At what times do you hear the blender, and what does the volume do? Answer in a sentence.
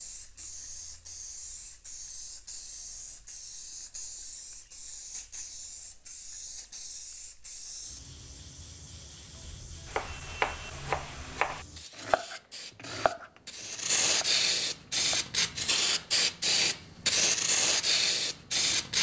The blender can't be heard in this clip.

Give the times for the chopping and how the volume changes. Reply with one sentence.
You can hear the chopping from 9.8 to 15.2 s, getting quieter.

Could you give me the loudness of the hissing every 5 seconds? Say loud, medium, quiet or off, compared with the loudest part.
quiet, quiet, medium, loud.